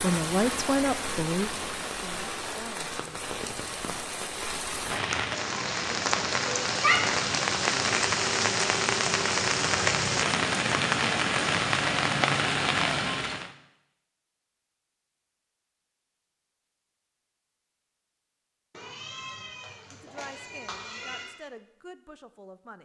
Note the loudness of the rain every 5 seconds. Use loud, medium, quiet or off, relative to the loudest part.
medium, loud, loud, off, off.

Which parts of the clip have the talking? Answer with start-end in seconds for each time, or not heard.
0.0-3.2, 19.9-22.8.